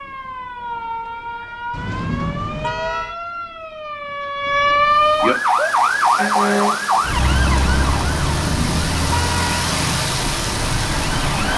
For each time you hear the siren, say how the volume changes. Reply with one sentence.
The siren can be heard from 0.0 to 11.5 s, getting louder then quieter.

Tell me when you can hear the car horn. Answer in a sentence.
The car horn can be heard from 1.7 to 3.1 s and from 8.2 to 9.7 s.